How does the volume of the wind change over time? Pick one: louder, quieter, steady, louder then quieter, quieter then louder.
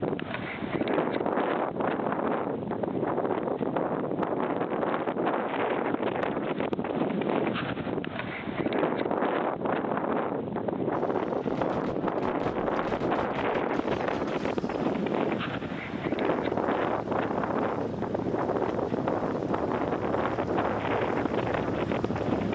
steady.